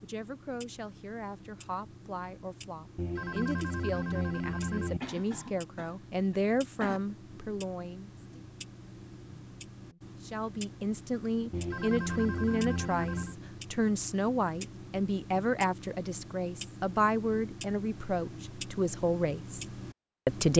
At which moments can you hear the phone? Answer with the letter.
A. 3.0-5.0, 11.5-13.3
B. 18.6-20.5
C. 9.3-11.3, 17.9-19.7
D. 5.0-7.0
A.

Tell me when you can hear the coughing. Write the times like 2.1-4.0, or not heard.
5.0-7.0.